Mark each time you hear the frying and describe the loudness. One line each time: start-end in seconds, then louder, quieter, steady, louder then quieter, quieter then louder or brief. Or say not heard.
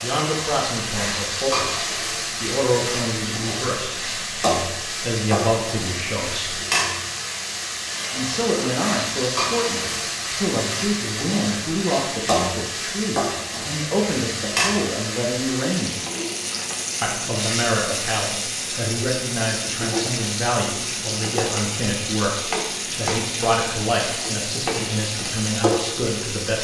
0.0-26.6 steady.